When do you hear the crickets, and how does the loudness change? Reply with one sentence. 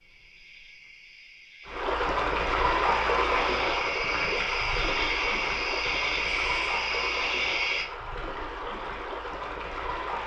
The crickets can be heard from 0.0 to 7.8 s, getting louder.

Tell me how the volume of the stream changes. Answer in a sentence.
The loudness of the stream goes down.